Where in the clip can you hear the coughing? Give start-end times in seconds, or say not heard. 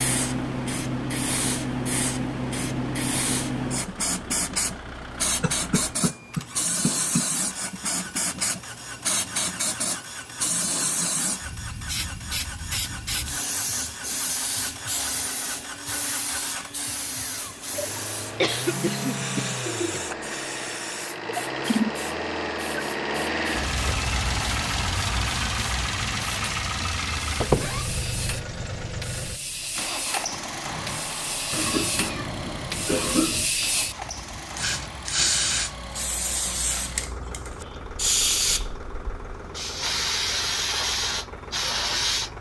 5.4-7.3, 18.4-20.0, 31.5-33.5.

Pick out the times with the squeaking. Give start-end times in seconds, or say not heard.
27.4-27.9.